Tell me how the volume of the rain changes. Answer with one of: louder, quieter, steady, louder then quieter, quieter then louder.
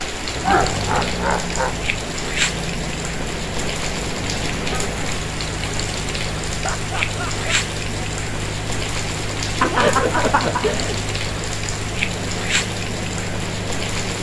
steady.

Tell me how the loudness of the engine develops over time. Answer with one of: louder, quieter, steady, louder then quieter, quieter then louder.
steady.